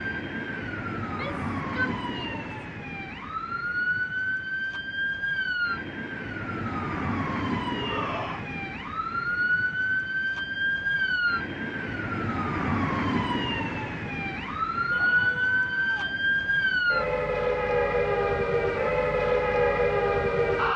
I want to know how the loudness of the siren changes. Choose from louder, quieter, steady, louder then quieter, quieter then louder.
louder.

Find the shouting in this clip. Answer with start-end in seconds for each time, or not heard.
1.0-2.5, 7.8-8.4, 14.9-16.2.